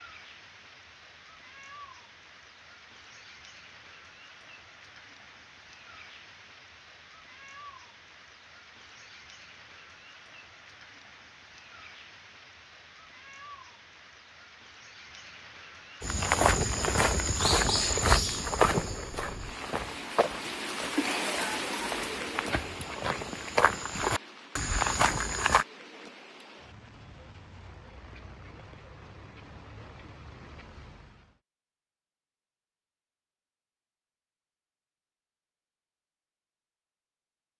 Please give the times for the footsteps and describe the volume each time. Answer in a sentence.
You can hear the footsteps from 16.0 to 25.6 s, getting quieter then louder.